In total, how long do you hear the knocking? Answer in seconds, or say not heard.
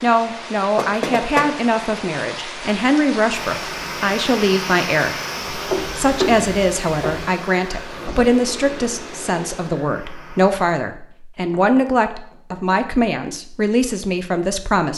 4 s.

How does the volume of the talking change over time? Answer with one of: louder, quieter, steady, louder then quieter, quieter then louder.
steady.